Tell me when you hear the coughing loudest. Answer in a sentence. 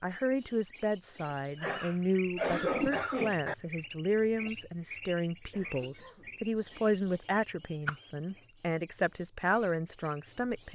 The loudest moment of the coughing is at 3 seconds.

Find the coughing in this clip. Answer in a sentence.
The coughing can be heard from 1.6 to 3.5 s and from 5.5 to 6.3 s.